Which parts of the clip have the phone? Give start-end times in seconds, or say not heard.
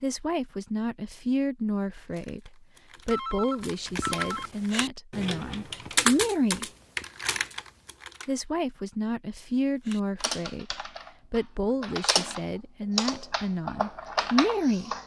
3.1-4.5.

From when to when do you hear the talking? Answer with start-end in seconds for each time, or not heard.
0.0-6.7, 8.2-14.9.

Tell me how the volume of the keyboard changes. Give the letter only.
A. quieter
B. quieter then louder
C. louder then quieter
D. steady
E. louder
E.